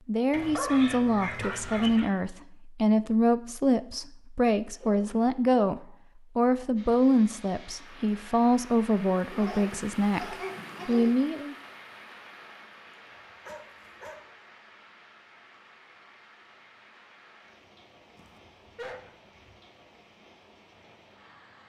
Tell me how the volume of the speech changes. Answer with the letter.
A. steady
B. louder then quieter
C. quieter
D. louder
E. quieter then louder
A.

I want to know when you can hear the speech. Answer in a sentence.
The speech can be heard from 0.1 to 11.6 s.